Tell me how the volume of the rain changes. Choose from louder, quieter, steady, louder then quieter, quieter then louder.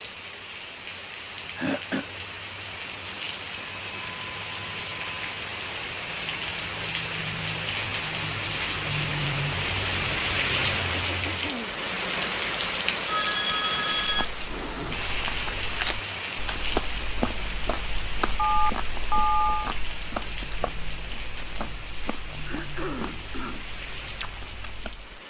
louder then quieter.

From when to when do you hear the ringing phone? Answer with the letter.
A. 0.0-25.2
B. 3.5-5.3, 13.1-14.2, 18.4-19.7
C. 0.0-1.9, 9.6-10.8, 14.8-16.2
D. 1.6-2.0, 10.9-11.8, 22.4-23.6
B.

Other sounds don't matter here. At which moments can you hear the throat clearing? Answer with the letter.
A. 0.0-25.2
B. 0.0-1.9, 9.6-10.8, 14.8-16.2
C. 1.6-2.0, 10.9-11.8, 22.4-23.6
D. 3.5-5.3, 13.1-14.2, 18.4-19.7
C.